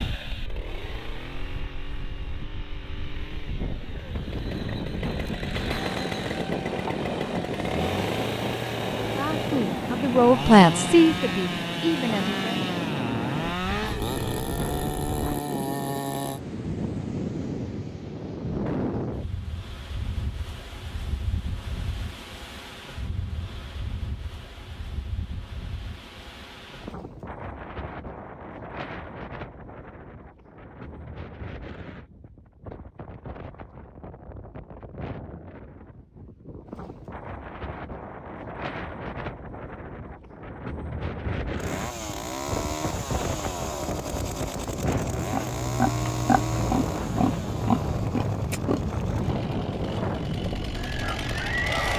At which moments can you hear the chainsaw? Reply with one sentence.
The chainsaw can be heard from 0.0 to 16.4 s and from 41.5 to 51.9 s.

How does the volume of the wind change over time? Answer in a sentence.
The loudness of the wind goes down, then up.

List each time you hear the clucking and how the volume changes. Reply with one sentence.
You can't hear the clucking here.